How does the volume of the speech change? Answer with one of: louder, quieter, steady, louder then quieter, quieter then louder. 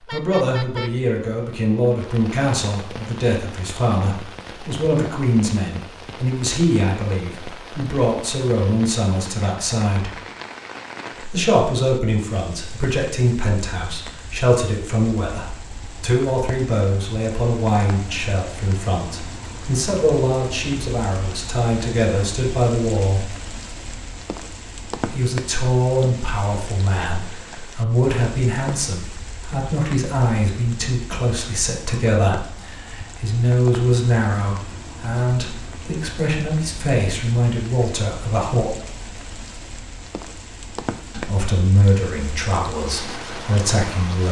steady.